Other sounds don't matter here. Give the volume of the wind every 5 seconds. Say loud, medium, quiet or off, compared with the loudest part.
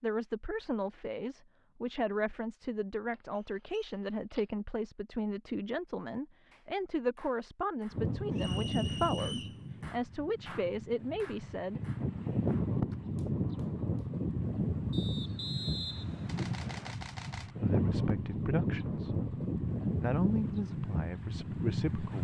off, loud, loud, loud, loud.